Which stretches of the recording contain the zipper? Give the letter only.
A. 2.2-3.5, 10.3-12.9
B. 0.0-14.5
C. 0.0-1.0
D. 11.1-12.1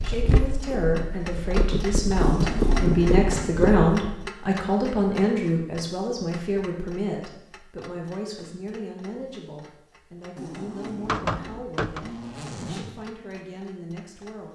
A.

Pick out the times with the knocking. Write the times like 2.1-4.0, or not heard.
11.1-12.1.